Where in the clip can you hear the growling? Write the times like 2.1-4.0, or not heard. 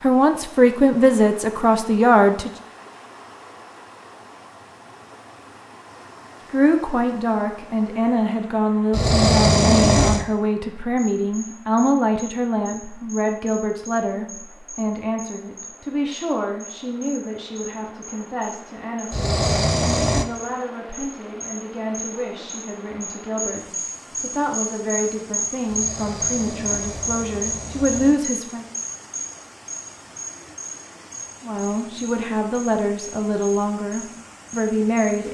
8.9-10.2, 19.1-20.2, 25.6-28.1.